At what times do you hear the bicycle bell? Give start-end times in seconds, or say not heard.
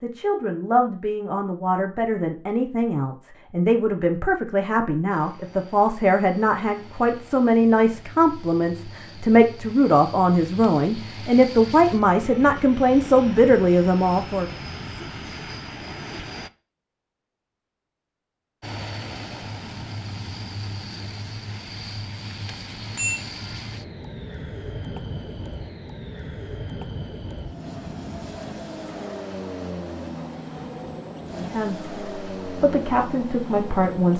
22.4-23.2.